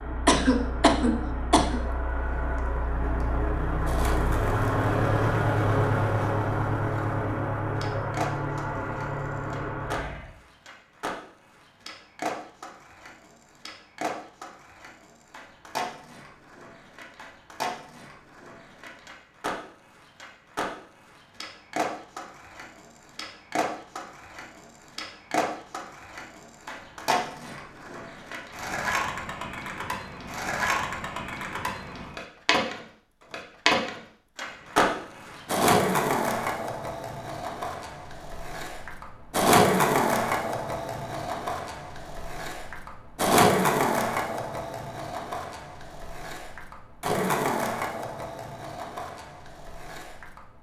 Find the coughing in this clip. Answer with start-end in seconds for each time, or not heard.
0.2-1.8.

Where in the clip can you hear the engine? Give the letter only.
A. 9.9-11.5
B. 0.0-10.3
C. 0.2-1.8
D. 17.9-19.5
B.